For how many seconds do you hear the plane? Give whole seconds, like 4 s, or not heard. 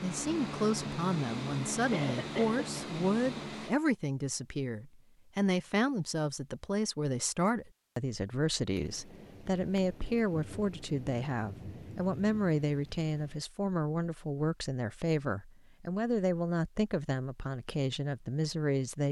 4 s.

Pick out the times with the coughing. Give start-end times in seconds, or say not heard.
1.9-2.8.